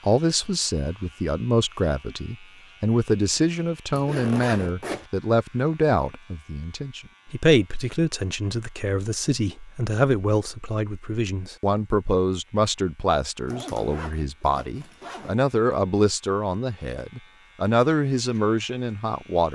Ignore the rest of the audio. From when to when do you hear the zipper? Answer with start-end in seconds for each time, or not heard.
3.9-5.1, 13.4-15.3.